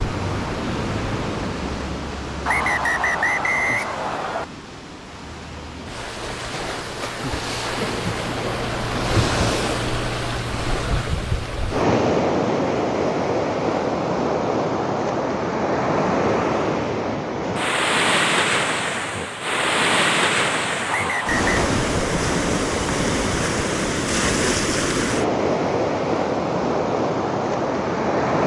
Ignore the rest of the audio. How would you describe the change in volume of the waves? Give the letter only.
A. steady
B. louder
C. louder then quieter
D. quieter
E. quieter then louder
B.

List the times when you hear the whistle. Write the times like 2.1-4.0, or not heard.
2.5-4.5, 20.9-21.7.